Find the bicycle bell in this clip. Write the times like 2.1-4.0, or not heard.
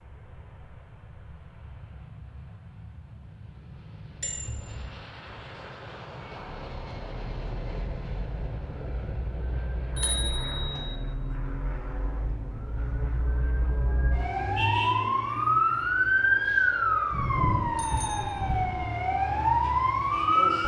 4.2-4.9, 9.9-10.9, 17.1-18.9.